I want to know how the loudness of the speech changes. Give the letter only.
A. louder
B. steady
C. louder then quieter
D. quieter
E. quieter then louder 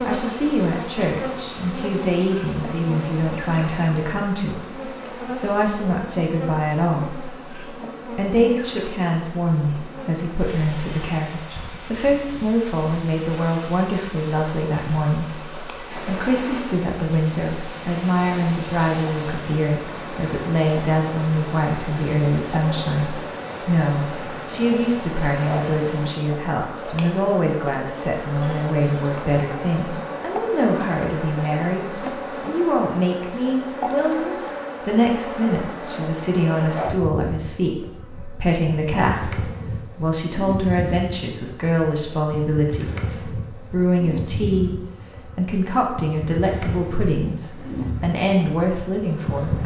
B.